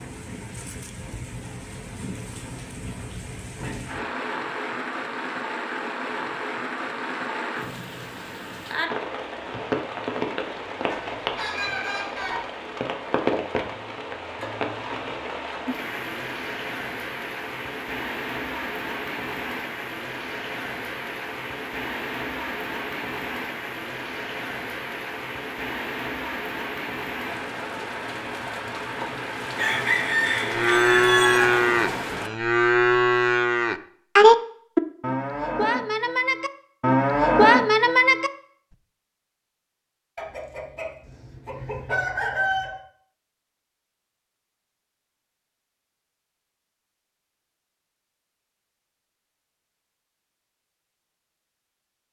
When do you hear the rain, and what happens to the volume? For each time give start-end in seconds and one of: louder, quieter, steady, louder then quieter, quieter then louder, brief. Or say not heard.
0.0-32.3 steady.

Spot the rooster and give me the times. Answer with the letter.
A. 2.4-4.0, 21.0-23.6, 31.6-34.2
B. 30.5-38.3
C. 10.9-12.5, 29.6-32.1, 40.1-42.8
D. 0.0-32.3
C.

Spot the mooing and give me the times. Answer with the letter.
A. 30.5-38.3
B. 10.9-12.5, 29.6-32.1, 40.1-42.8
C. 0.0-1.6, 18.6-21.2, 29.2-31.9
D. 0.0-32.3
A.